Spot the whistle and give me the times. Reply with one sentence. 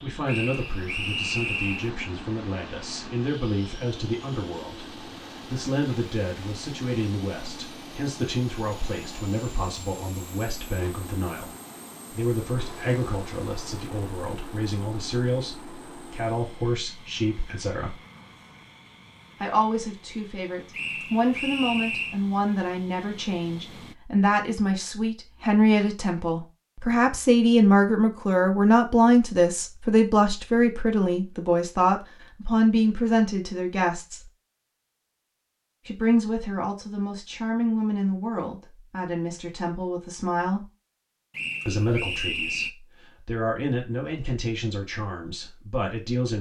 You can hear the whistle from 0.2 to 1.9 s, from 20.7 to 22.2 s and from 41.3 to 42.7 s.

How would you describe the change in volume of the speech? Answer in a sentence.
The loudness of the speech goes up, then down.